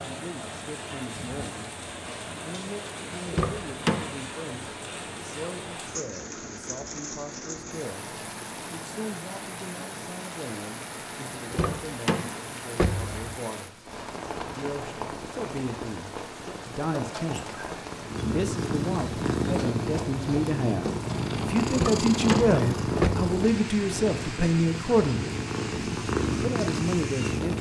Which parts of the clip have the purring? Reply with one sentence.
You can hear the purring from 18.1 to 27.5 s.